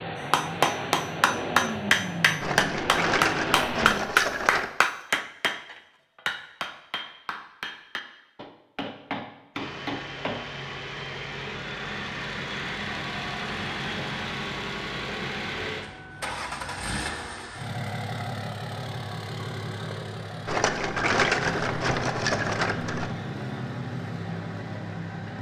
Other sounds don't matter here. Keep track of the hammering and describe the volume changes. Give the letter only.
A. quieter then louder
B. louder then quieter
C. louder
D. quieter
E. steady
D.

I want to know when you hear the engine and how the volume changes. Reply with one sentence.
You can hear the engine from 0.0 to 4.0 s, at a steady volume; and from 9.6 to 25.3 s, at a steady volume.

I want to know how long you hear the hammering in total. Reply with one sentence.
You can hear the hammering for 10 seconds altogether.